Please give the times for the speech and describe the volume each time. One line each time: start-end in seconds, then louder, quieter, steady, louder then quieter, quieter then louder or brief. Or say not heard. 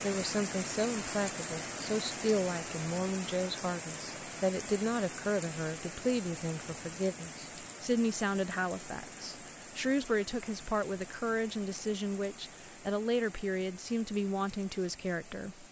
0.0-15.6 steady.